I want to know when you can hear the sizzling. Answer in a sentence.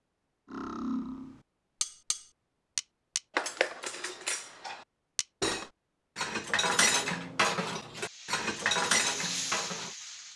You can hear the sizzling from 8.0 to 10.3 s.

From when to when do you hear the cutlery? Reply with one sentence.
You can hear the cutlery from 0.5 to 9.9 s.